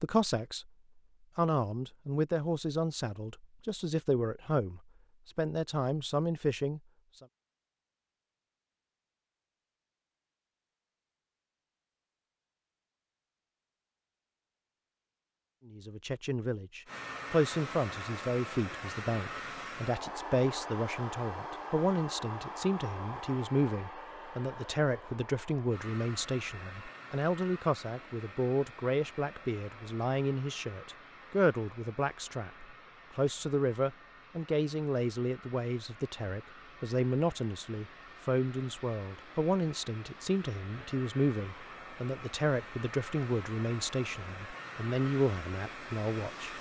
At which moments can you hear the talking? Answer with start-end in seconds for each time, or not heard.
0.0-0.7, 1.4-7.2, 15.7-46.5.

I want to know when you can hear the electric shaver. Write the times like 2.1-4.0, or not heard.
not heard.